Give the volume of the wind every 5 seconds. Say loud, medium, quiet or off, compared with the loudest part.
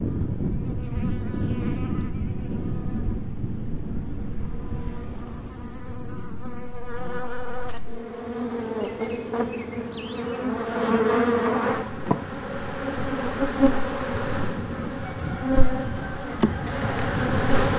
loud, quiet, medium, loud.